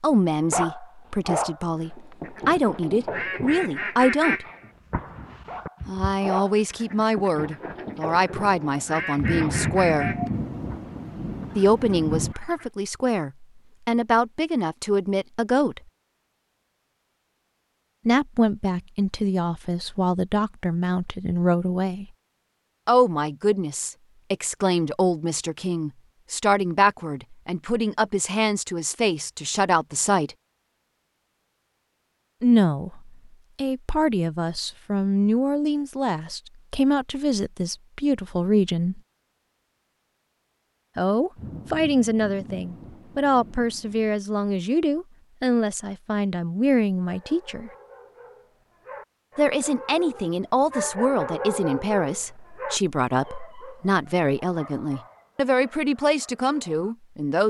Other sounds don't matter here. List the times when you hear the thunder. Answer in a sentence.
The thunder can be heard from 9.2 to 12.3 s and from 41.4 to 44.1 s.